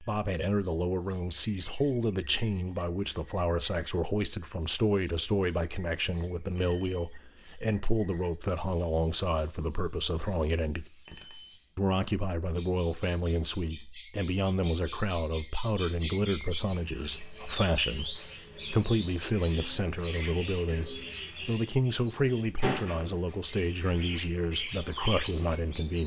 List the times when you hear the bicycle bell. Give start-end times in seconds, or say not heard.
6.5-7.0, 11.1-11.6, 18.8-19.2.